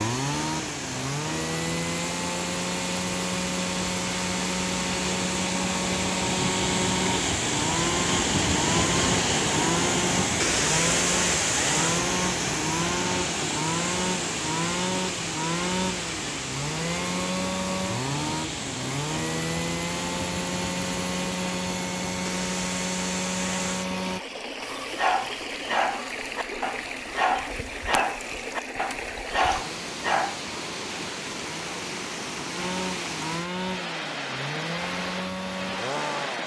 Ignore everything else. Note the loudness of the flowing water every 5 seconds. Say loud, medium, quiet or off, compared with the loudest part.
medium, loud, loud, medium, medium, medium, medium, medium.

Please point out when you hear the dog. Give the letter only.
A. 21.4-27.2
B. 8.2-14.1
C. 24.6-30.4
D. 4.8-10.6
C.